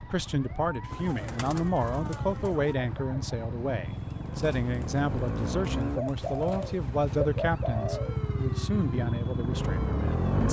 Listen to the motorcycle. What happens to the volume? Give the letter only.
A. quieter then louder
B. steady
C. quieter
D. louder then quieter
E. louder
E.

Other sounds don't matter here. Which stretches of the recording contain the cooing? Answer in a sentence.
You can hear the cooing from 0.9 to 2.8 s and from 6.0 to 8.2 s.